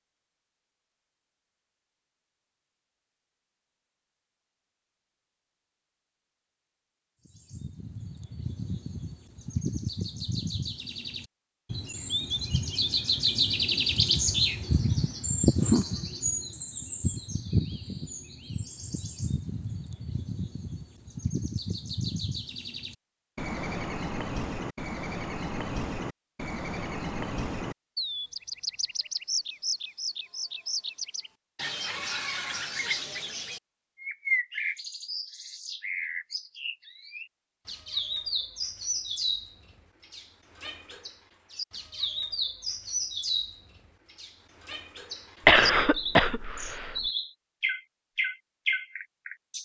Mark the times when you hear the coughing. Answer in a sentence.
You can hear the coughing from 45.5 to 47.0 s.